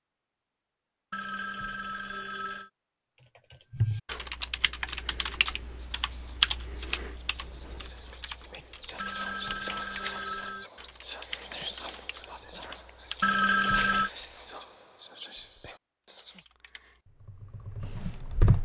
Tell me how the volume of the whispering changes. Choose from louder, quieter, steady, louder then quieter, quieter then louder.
louder.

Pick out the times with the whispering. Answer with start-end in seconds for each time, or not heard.
5.6-16.4.